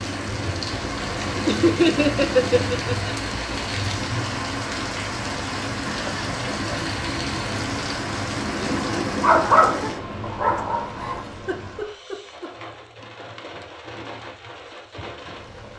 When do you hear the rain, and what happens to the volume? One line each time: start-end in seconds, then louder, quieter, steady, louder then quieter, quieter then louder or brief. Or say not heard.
0.0-15.7 quieter.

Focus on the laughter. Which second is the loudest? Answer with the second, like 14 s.
2 s.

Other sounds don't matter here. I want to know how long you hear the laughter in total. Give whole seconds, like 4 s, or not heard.
5 s.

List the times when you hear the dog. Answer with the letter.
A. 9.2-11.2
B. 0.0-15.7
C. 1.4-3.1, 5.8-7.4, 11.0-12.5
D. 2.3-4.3
A.